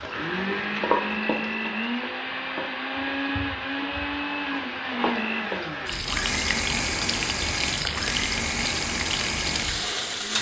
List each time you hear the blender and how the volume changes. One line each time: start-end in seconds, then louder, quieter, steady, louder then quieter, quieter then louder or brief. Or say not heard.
0.0-10.3 steady.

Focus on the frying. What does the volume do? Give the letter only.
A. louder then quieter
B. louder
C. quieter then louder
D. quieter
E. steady
C.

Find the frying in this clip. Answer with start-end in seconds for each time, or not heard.
0.0-10.3.